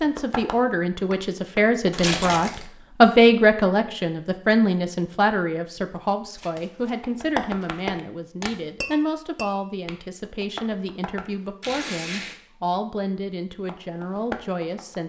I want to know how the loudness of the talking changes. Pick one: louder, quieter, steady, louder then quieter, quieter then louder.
quieter.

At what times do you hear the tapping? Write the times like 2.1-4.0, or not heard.
0.0-1.9, 7.0-11.2, 13.7-15.0.